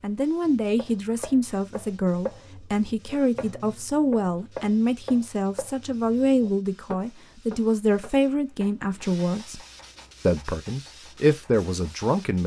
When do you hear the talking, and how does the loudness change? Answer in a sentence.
The talking can be heard from 0.0 to 9.6 s, at a steady volume; and briefly from 10.2 to 12.4 s.